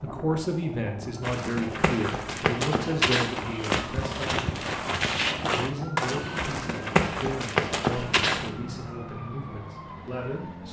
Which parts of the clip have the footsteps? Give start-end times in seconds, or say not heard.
1.2-8.5.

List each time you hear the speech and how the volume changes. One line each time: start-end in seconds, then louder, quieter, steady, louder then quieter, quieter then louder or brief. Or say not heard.
0.0-10.6 quieter.